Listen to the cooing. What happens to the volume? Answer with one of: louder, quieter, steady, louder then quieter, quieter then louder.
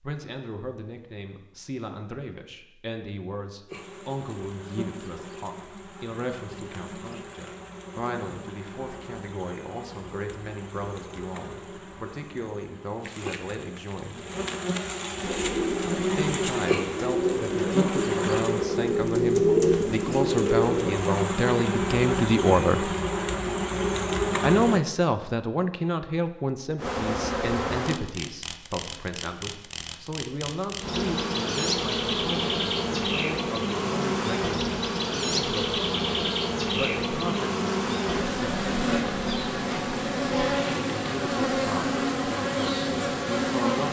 louder.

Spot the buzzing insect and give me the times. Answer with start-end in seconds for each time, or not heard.
3.6-24.8, 26.8-43.8.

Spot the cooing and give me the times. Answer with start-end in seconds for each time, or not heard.
15.2-21.0.